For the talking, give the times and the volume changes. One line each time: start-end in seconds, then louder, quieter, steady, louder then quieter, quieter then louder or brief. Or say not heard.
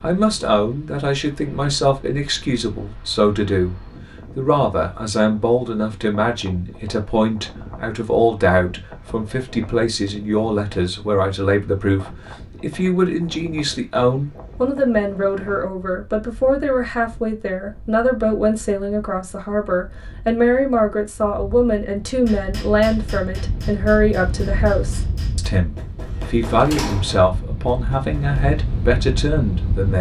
0.0-29.9 steady.